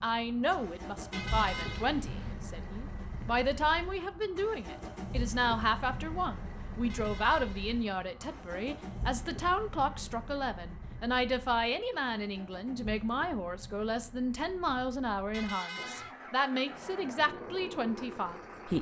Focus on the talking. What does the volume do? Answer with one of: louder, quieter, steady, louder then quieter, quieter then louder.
steady.